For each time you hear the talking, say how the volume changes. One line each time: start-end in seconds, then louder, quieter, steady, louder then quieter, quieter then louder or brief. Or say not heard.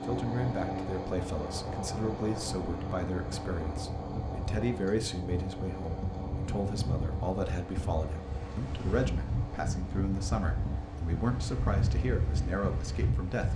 0.0-13.5 steady.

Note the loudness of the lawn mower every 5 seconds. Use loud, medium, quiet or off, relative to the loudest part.
loud, medium, medium.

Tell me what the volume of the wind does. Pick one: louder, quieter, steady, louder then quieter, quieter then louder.
louder.